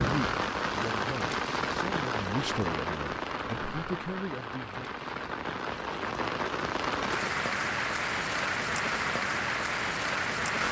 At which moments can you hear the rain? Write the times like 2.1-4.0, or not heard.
0.0-10.6.